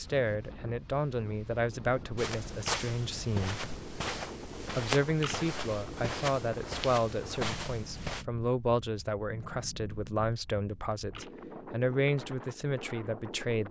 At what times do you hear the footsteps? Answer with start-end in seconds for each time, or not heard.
2.1-8.2.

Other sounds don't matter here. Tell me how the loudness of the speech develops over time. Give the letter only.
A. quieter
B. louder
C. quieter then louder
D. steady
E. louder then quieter
D.